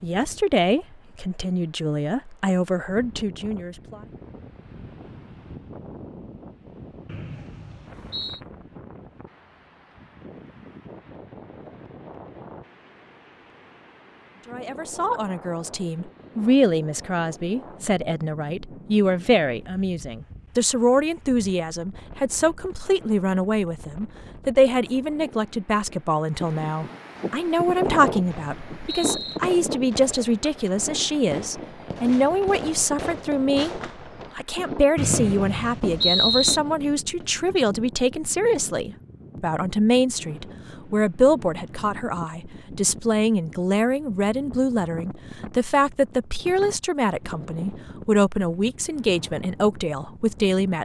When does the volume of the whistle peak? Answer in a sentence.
The volume of the whistle peaks at 36 seconds.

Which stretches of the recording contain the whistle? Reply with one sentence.
The whistle can be heard from 7.0 to 8.4 s, from 27.9 to 29.4 s and from 35.0 to 36.6 s.